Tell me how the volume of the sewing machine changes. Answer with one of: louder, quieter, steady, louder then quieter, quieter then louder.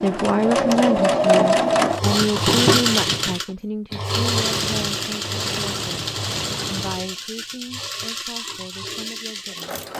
quieter.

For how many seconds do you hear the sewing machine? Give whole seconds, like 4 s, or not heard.
10 s.